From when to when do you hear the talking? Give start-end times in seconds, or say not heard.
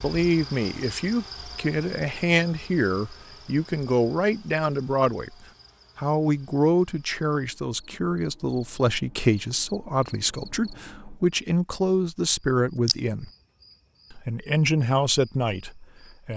0.0-5.3, 6.0-13.3, 14.1-16.3.